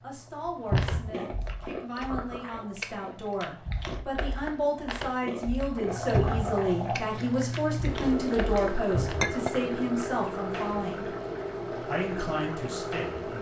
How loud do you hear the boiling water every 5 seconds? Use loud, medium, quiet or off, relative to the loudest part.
quiet, loud, loud.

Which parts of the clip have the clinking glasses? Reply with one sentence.
You can hear the clinking glasses from 9.2 to 9.6 s.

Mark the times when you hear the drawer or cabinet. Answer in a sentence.
You can hear the drawer or cabinet from 0.7 to 1.1 s, from 6.1 to 6.5 s and from 8.9 to 9.3 s.